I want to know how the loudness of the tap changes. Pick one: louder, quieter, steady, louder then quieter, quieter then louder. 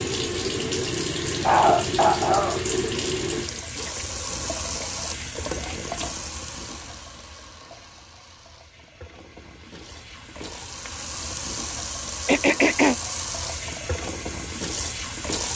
quieter then louder.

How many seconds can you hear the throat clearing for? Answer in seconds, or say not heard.
2 s.